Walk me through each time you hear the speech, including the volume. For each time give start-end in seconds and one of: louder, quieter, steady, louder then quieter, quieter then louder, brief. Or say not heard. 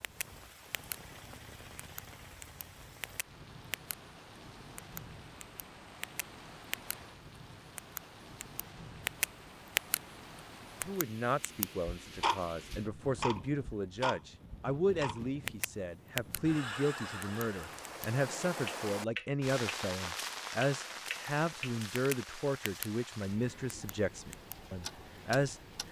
10.8-25.8 steady.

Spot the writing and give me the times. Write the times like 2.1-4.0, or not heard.
not heard.